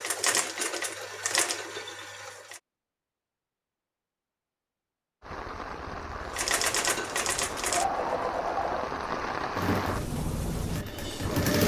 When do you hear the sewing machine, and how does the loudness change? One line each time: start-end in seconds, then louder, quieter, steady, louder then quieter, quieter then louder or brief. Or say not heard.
0.0-2.6 brief
6.3-11.6 quieter.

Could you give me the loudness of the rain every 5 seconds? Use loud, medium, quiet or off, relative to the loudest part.
off, loud, loud.